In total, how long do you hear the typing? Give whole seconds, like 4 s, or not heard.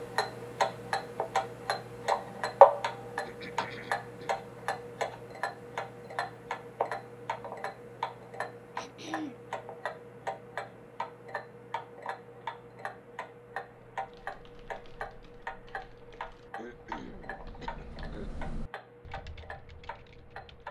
7 s.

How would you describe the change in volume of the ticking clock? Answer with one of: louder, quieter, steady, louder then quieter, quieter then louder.
quieter.